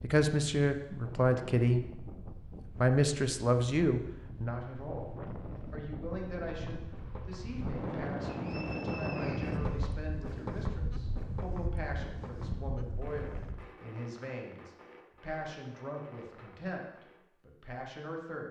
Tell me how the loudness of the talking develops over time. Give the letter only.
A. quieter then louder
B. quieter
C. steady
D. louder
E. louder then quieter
B.